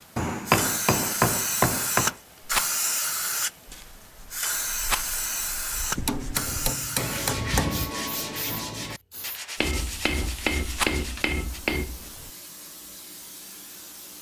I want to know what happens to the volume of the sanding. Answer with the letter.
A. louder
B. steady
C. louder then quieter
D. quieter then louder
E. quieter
C.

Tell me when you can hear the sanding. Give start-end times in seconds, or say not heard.
3.9-11.6.